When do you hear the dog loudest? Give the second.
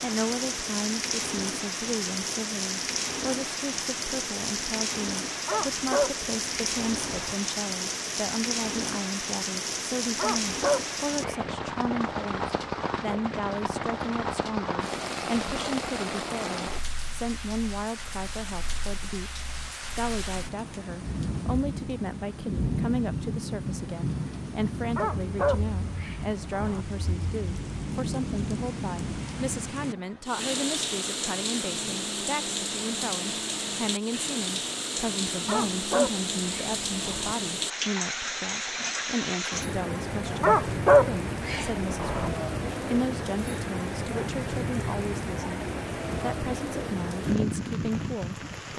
41 s.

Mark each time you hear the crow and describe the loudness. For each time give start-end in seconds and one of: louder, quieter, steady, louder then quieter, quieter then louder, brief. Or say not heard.
not heard.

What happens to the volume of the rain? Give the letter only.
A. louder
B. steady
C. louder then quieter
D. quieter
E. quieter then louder
B.